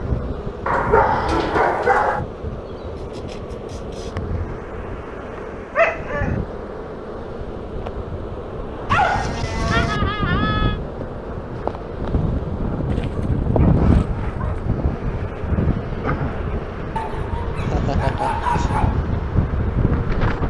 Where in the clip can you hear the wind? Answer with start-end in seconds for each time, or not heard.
0.0-20.4.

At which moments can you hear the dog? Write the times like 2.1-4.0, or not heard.
0.7-2.2, 5.8-6.3, 8.8-10.0, 12.9-14.7, 16.9-18.9.